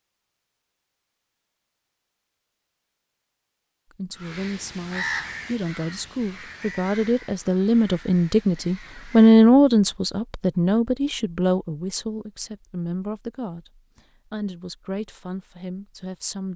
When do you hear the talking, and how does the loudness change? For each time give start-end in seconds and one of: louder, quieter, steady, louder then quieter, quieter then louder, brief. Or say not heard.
3.9-16.5 louder then quieter.